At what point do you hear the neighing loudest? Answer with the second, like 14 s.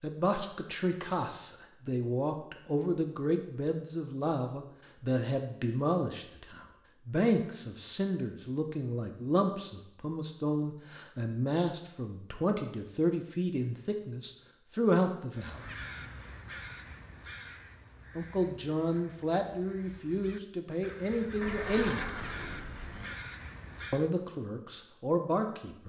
22 s.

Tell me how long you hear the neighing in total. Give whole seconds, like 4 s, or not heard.
2 s.